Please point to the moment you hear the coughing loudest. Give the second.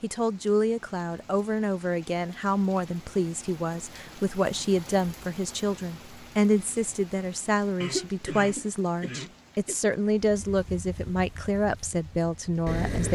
8 s.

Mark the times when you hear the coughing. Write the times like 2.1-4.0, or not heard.
7.8-9.8.